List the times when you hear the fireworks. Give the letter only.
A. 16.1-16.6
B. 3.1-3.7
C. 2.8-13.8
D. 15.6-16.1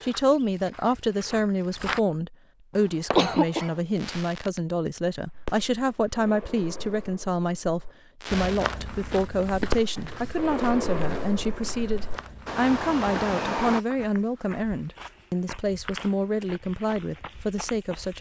C.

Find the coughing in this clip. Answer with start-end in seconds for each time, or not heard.
3.1-3.7.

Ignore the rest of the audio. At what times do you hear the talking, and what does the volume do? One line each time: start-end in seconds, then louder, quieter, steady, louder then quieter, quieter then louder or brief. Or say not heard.
0.0-18.1 steady.